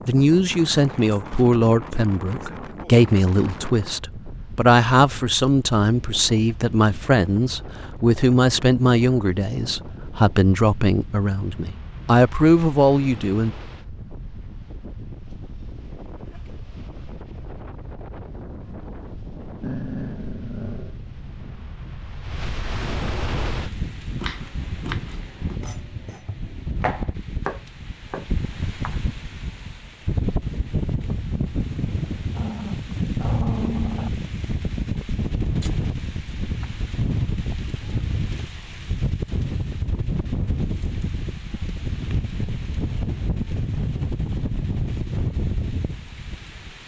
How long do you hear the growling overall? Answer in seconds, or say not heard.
3 s.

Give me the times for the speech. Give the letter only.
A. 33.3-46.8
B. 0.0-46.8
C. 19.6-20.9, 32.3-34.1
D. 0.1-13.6
D.